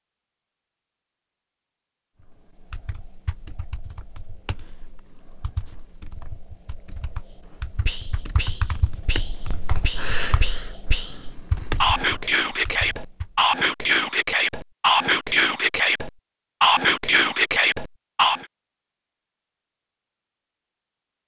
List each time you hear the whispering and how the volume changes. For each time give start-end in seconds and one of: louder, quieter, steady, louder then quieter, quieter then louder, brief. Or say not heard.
7.8-18.4 louder.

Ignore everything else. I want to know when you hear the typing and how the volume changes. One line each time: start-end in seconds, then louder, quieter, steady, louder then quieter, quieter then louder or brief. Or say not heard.
2.2-13.6 louder.